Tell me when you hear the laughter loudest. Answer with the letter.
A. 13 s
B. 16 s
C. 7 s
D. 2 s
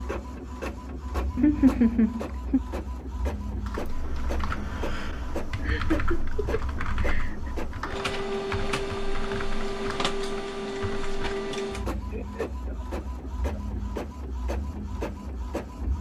D.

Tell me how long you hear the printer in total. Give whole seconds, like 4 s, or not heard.
16 s.